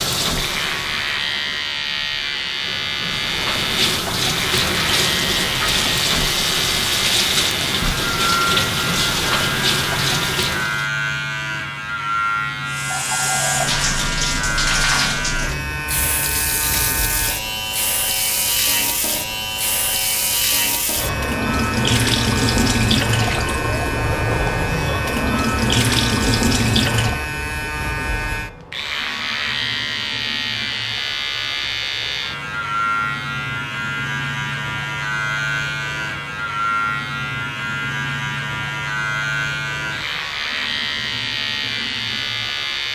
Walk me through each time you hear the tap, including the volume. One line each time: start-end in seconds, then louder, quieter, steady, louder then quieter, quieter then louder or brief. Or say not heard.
0.0-10.9 louder
12.7-42.9 quieter.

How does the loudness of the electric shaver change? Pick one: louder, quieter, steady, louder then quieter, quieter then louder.
steady.